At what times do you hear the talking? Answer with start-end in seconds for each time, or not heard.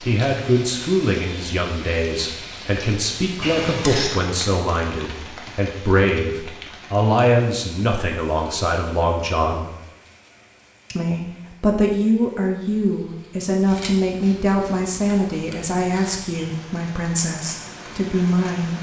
0.0-9.7, 10.9-18.7.